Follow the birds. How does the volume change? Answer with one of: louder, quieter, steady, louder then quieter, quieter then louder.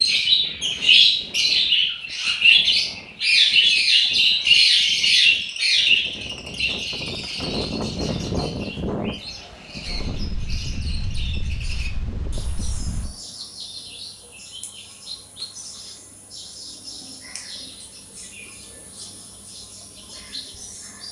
quieter.